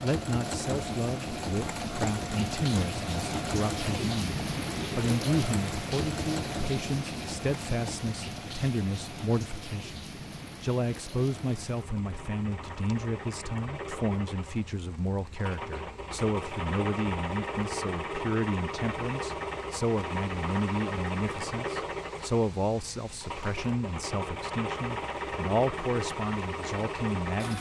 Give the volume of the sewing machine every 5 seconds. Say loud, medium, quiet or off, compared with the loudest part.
loud, medium, medium, loud, loud, loud.